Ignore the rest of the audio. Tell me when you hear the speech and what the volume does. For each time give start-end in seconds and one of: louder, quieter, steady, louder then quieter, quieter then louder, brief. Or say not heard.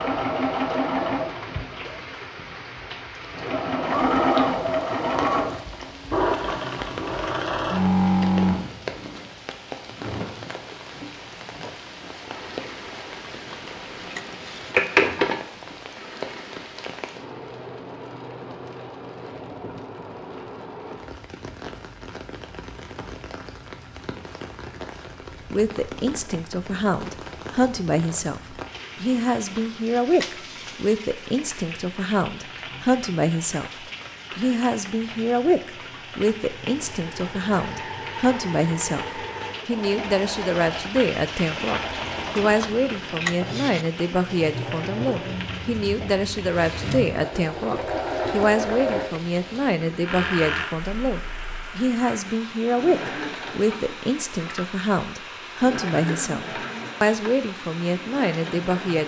25.5-59.0 steady.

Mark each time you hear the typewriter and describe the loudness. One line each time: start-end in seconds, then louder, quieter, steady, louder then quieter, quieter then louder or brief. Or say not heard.
not heard.